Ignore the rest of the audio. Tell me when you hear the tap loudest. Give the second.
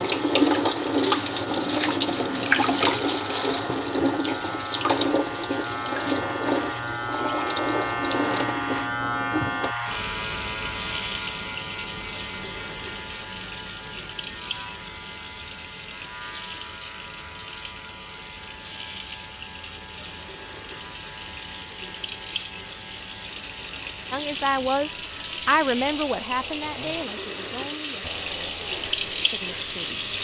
1 s.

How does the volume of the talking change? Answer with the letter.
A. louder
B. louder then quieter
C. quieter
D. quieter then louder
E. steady
C.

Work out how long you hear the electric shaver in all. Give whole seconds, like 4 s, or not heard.
30 s.